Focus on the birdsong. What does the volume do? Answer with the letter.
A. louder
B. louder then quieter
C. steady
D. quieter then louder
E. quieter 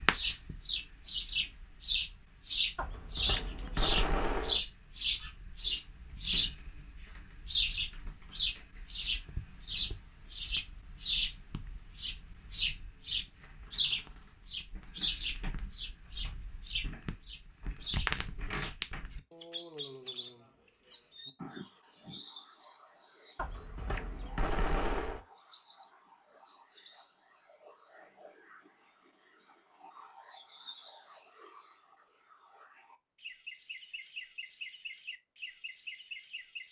E.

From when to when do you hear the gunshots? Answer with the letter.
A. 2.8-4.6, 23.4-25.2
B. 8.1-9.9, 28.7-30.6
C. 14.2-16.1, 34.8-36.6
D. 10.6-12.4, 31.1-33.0
A.